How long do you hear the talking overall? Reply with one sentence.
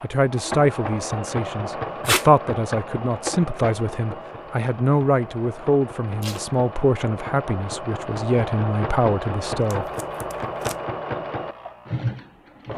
You can hear the talking for 10 seconds altogether.